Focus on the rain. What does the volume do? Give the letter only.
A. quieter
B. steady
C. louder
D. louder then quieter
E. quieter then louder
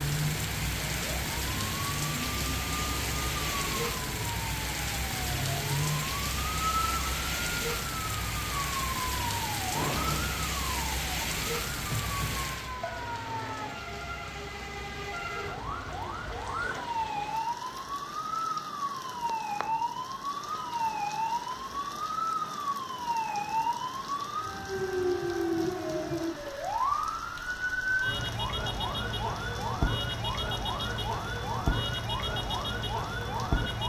A.